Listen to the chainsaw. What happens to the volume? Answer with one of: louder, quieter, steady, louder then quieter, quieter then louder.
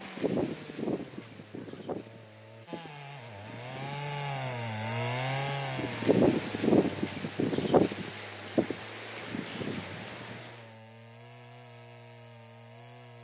louder then quieter.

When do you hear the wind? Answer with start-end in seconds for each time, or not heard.
0.0-10.6.